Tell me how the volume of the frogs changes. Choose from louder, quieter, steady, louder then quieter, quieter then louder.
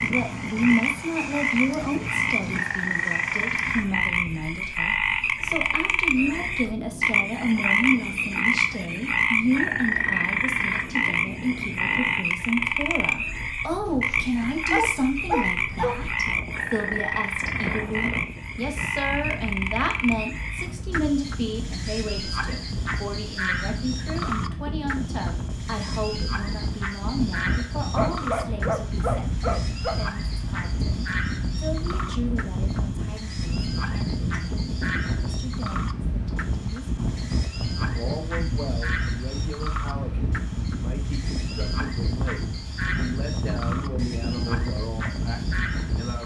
quieter.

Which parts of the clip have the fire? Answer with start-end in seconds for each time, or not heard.
not heard.